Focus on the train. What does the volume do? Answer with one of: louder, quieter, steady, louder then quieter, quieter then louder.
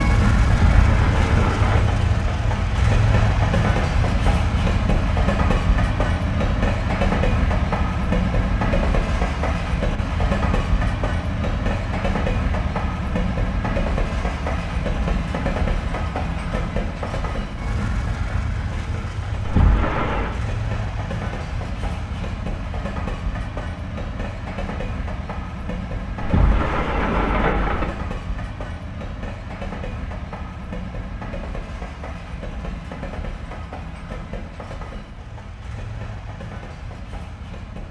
quieter.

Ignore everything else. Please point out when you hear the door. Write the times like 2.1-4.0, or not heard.
0.5-1.9, 19.4-20.4, 26.2-27.9.